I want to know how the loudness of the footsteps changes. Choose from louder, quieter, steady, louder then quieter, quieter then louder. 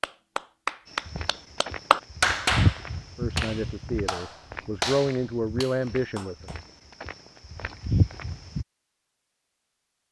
quieter then louder.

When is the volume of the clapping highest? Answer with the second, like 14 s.
2 s.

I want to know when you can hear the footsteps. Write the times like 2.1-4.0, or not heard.
0.9-8.7.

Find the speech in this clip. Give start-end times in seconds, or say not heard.
3.1-6.5.